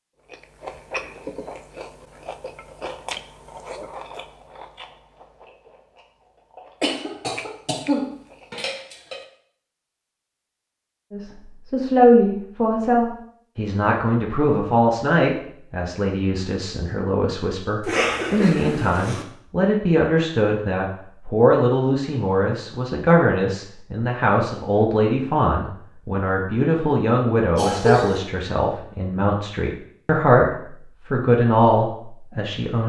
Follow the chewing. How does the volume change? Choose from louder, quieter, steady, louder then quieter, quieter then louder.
quieter then louder.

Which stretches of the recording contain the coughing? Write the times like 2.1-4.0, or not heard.
6.8-9.2, 17.9-19.2, 27.6-28.2.